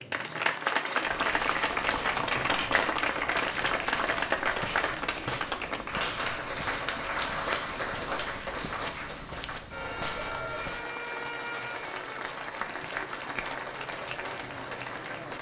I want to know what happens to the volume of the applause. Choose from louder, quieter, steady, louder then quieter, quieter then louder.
quieter.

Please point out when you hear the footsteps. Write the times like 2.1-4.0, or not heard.
1.0-10.8.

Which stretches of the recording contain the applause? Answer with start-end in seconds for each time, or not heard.
0.0-15.3.